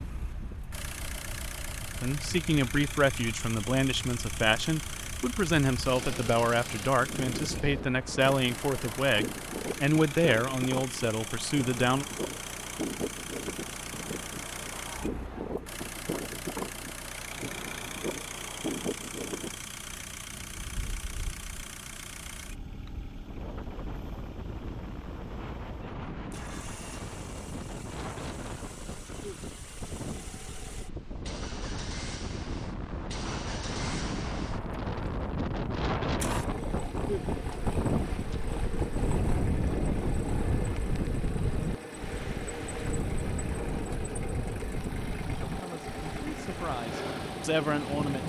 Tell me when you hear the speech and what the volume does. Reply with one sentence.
The speech can be heard from 2.0 to 12.1 s, at a steady volume; and briefly from 45.4 to 48.2 s.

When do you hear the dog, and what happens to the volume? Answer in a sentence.
The dog can't be heard in this clip.